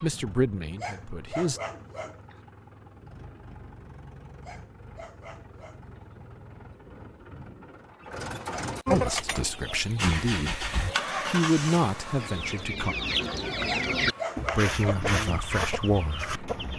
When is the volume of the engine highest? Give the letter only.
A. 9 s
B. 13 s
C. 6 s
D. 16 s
A.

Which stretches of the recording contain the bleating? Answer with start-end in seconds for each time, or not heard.
not heard.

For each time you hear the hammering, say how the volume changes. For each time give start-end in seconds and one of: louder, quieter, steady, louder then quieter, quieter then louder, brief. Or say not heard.
not heard.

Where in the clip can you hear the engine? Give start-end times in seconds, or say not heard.
0.0-16.7.